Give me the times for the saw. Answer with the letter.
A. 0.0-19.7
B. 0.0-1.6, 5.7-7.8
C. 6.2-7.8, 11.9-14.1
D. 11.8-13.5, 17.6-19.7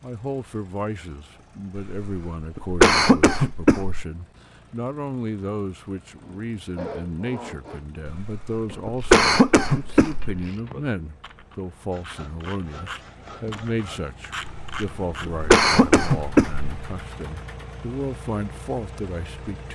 C.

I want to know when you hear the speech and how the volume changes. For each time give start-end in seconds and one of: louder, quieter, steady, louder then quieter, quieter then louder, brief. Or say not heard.
0.0-19.7 steady.